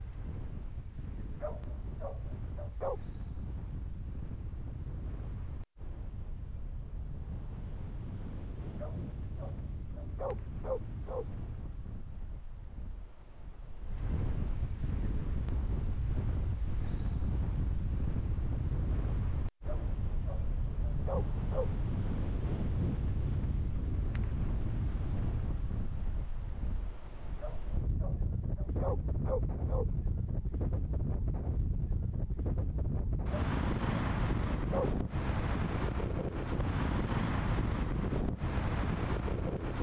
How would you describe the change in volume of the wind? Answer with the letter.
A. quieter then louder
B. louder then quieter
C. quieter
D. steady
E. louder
E.